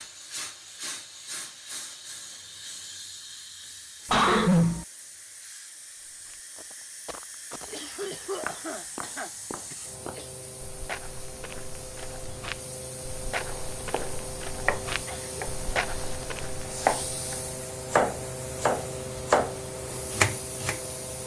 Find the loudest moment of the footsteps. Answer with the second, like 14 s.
16 s.